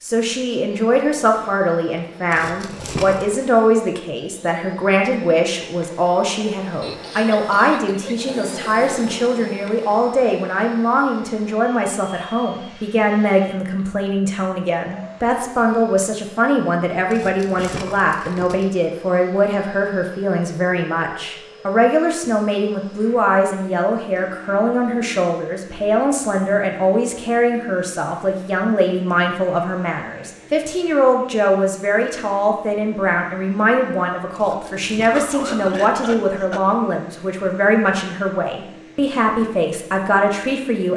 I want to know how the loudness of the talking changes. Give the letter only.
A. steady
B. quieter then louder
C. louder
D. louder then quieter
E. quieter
A.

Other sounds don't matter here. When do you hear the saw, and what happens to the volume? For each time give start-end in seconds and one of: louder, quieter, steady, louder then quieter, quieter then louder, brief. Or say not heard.
not heard.